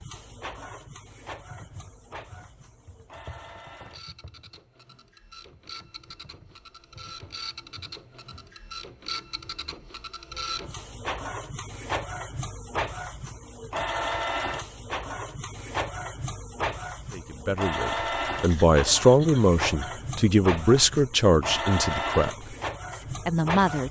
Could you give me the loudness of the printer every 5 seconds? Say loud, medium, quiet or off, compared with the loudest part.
quiet, medium, loud, loud, loud.